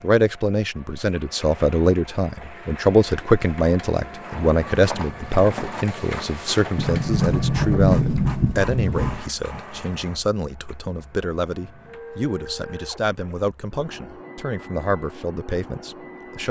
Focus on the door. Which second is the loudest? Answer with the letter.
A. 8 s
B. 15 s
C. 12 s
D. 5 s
A.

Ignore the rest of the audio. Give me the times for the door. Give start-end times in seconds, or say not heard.
6.8-9.2.